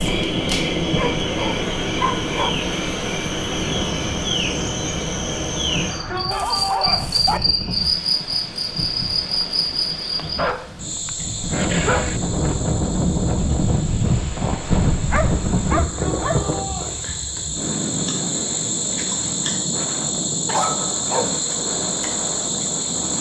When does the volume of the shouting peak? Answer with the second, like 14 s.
7 s.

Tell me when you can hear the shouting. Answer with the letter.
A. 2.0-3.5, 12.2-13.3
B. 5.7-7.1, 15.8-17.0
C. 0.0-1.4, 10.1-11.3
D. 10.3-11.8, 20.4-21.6
B.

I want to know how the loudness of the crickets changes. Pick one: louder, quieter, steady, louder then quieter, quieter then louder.
quieter then louder.